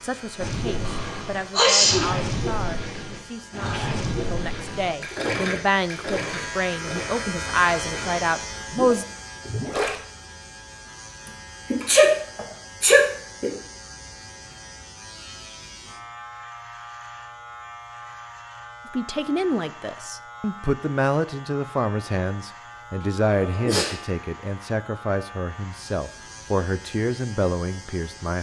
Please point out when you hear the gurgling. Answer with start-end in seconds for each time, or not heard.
0.3-10.0.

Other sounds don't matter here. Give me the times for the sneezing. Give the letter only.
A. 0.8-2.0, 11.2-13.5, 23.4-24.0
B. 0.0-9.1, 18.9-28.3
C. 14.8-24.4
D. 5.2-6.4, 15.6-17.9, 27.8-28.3
A.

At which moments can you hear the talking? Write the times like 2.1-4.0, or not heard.
0.0-9.1, 18.9-28.3.